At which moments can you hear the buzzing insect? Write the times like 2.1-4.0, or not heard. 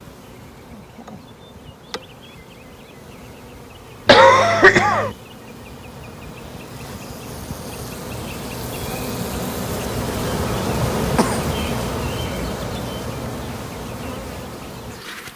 0.0-15.3.